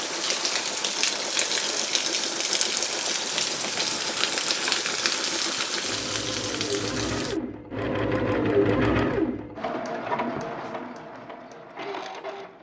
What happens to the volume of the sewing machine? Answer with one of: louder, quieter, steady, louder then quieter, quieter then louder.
louder then quieter.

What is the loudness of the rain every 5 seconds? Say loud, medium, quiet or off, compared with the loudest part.
loud, loud, off.